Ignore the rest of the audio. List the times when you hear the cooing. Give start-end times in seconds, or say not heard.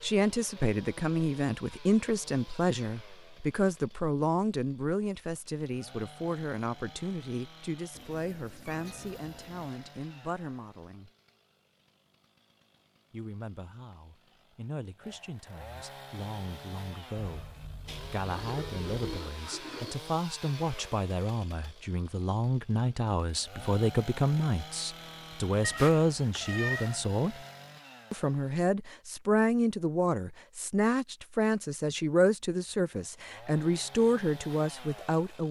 18.2-19.9.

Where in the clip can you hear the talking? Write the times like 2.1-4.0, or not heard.
0.0-11.1, 13.1-17.5, 18.1-27.4, 28.1-35.4.